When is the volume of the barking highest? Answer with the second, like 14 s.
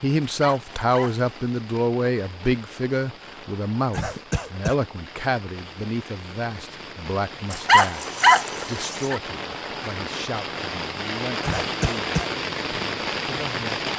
8 s.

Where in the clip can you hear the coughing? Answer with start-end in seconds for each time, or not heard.
3.9-4.8, 11.4-12.3.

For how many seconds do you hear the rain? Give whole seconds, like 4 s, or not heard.
14 s.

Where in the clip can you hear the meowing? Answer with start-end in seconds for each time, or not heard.
not heard.